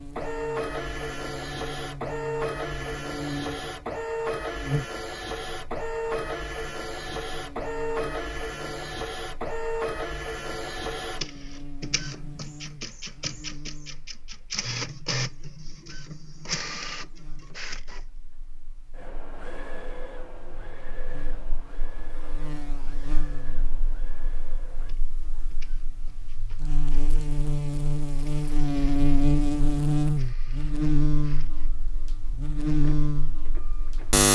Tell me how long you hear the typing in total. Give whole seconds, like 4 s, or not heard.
not heard.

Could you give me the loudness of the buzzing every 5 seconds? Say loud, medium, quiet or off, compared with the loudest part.
medium, quiet, quiet, quiet, quiet, loud, loud.